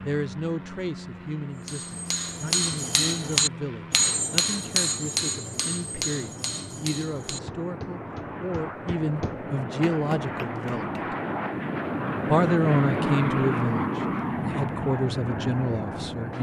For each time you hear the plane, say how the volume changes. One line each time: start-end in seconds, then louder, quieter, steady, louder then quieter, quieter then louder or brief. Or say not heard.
0.0-16.3 louder.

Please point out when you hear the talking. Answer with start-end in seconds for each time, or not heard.
0.0-11.2, 12.3-16.3.